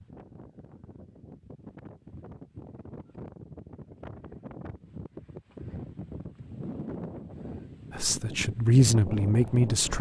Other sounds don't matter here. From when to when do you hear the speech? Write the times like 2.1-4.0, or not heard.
7.9-9.9.